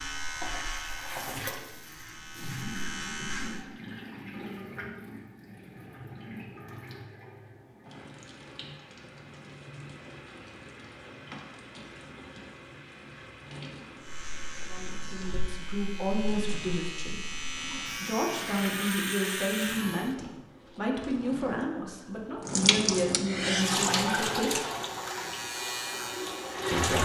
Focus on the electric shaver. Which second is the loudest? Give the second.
19 s.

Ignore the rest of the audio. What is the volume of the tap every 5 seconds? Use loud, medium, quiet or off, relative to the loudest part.
medium, quiet, quiet, quiet, loud, loud.